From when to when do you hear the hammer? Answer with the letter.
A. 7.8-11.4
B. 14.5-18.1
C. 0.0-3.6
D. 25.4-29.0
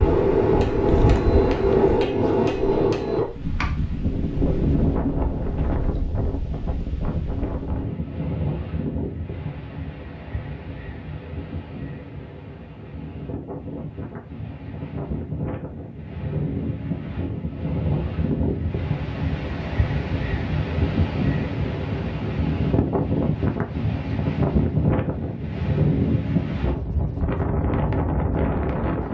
C.